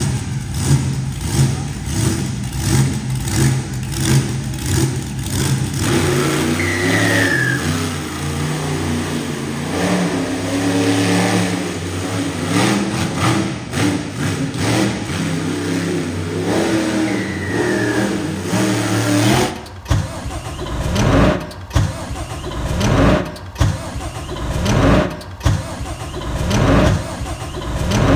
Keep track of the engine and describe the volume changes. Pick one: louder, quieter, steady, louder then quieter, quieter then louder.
steady.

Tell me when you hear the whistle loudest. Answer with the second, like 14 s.
7 s.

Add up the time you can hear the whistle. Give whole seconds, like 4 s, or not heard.
2 s.